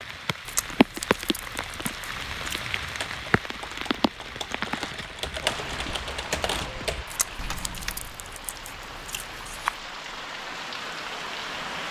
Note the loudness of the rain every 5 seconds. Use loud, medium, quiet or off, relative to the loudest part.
loud, medium, loud.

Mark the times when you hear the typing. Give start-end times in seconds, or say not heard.
2.6-8.2.